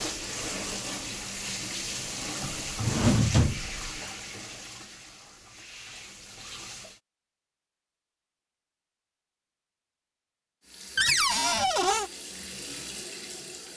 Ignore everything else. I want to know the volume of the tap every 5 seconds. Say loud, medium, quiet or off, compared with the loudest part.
loud, medium, medium.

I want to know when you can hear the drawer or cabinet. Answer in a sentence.
The drawer or cabinet can be heard from 2.4 to 3.8 s and from 10.9 to 12.1 s.